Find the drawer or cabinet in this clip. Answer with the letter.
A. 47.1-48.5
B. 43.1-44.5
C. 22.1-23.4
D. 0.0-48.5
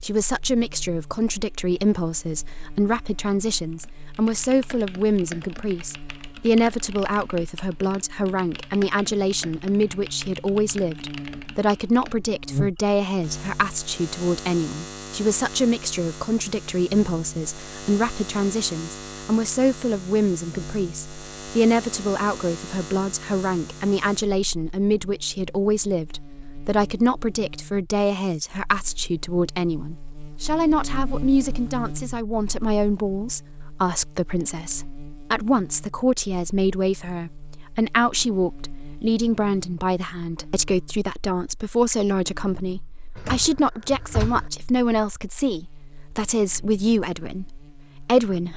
B.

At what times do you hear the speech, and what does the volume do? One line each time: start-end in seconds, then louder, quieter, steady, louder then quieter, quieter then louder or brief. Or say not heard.
0.0-48.5 steady.